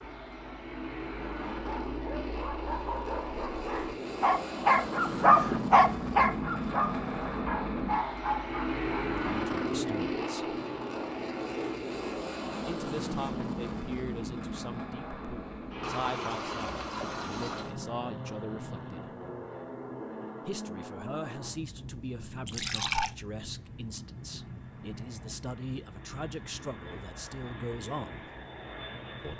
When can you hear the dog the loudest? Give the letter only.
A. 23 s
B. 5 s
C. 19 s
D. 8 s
B.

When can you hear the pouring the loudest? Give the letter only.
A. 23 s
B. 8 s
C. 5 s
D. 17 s
A.